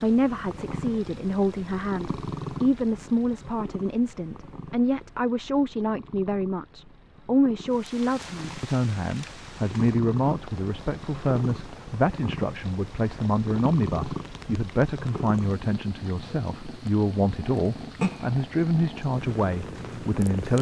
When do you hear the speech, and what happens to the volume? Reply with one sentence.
The speech can be heard from 0.0 to 20.5 s, at a steady volume.